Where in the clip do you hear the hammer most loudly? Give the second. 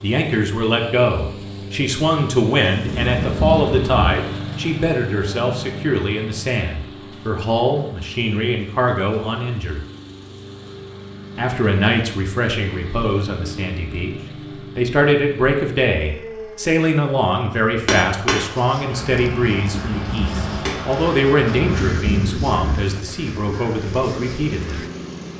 18 s.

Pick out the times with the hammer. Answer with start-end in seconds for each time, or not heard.
17.8-20.8.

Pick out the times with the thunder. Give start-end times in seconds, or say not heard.
2.9-4.2, 21.6-22.9.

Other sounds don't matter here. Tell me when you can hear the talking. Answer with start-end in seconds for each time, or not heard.
0.0-9.8, 11.3-14.2, 14.8-24.8.